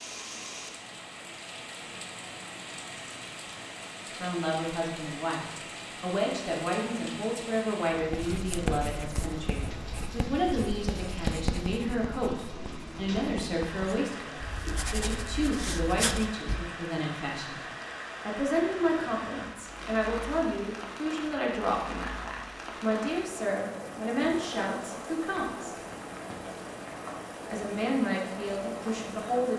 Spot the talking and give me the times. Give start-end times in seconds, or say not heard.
4.0-17.6, 18.2-25.8, 27.4-29.5.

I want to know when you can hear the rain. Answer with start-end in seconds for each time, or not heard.
0.0-29.5.